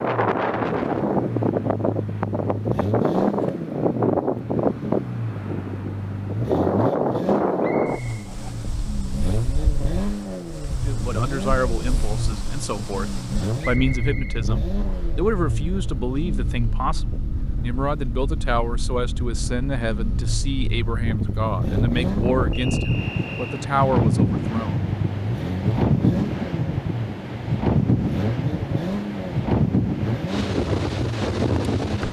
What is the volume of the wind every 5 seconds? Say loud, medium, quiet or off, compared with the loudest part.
loud, loud, quiet, quiet, loud, loud, loud.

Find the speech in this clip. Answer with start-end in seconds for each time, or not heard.
10.8-24.8.